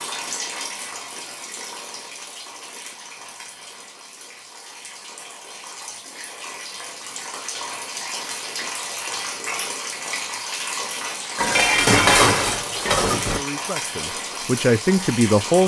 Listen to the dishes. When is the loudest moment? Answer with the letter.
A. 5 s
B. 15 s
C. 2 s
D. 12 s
D.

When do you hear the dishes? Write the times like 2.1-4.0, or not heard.
11.3-13.4.